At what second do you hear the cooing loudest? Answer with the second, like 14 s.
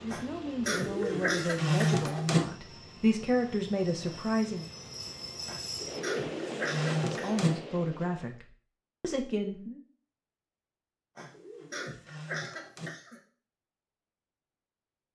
2 s.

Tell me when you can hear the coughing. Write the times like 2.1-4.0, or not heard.
0.1-2.1, 5.5-7.5, 11.2-13.2.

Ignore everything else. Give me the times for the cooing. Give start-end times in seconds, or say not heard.
0.7-2.5, 5.8-7.5, 11.2-12.9.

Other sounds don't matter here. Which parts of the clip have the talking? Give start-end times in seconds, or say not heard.
0.0-4.7, 7.0-9.8.